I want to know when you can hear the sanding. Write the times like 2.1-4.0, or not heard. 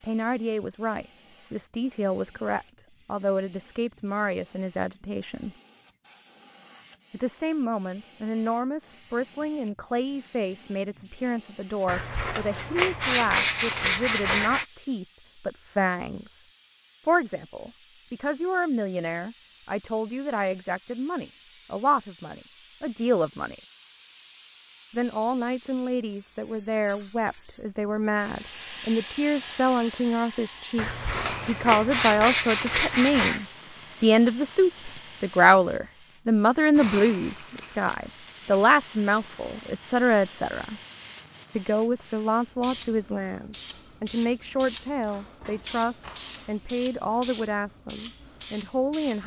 11.8-14.7, 30.8-33.5.